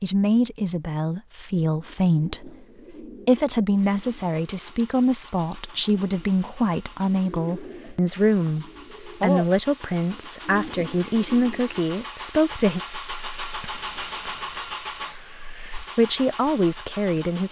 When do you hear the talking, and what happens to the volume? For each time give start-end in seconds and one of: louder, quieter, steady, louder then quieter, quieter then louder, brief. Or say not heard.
0.0-12.8 steady
15.9-17.4 brief.